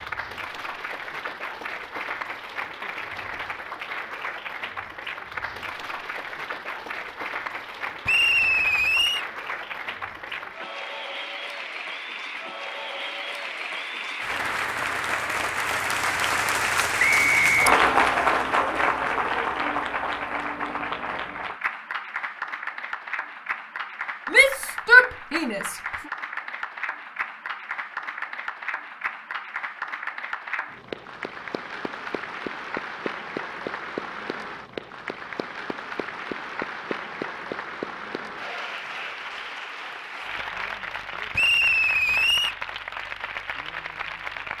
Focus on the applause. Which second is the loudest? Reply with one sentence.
The loudest moment of the applause is at 18 seconds.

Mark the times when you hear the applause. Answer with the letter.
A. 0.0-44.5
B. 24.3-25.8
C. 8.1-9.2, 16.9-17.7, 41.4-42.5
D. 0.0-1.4
A.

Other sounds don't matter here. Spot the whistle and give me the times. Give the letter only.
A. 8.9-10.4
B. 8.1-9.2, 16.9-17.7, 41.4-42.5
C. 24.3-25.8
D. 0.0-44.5
B.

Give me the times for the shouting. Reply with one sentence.
The shouting can be heard from 24.3 to 25.8 s.